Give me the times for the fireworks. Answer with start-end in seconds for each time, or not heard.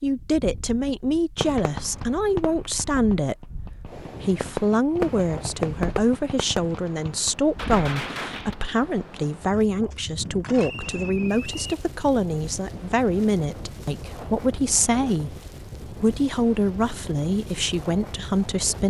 0.8-8.6.